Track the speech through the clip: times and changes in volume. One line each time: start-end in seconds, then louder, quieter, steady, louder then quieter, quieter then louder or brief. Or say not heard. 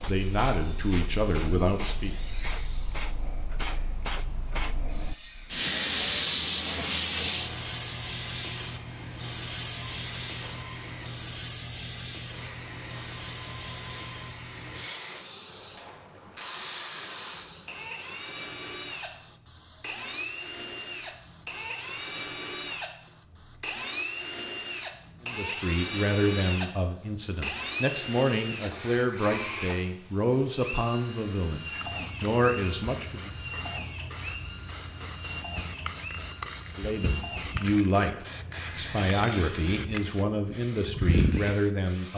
0.1-2.1 brief
25.2-33.3 steady
36.8-42.1 quieter then louder.